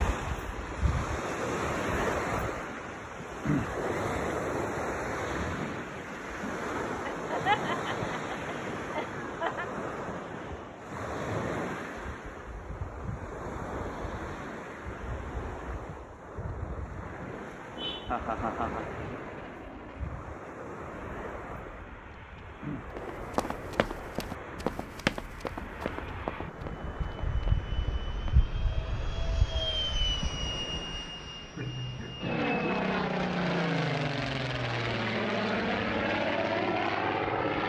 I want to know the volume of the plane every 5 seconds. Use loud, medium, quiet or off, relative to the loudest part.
off, off, off, quiet, quiet, medium, loud, loud.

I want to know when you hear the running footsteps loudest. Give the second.
25 s.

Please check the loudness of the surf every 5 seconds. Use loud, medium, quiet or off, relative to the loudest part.
loud, loud, medium, medium, medium, quiet, quiet, off.